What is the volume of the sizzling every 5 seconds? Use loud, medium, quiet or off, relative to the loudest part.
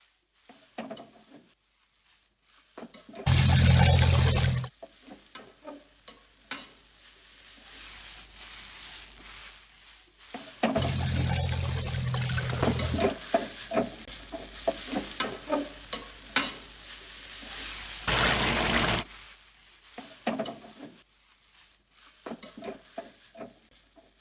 quiet, quiet, loud, loud, medium.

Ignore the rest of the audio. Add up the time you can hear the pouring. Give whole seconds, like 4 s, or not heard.
5 s.